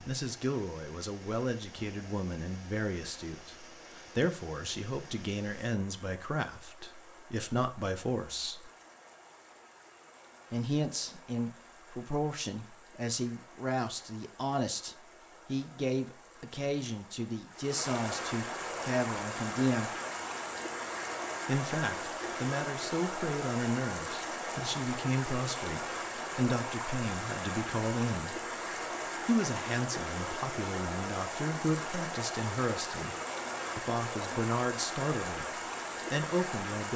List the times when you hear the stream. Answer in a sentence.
You can hear the stream from 0.0 to 36.9 s.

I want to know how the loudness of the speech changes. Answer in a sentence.
The loudness of the speech stays about the same.